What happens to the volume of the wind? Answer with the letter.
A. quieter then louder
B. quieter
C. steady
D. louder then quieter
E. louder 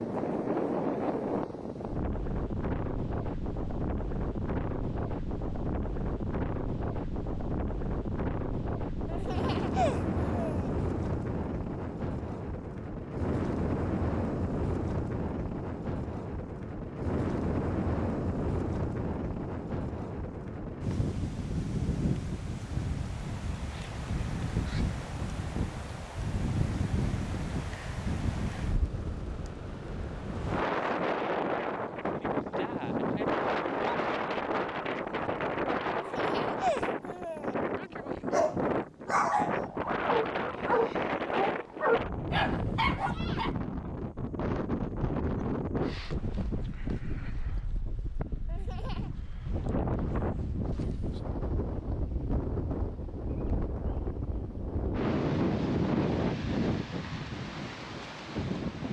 C.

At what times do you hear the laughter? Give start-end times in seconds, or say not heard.
9.1-10.7, 35.9-37.5, 48.5-49.1.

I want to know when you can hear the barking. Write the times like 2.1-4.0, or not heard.
38.3-43.5.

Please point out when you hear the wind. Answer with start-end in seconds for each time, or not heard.
0.0-58.8.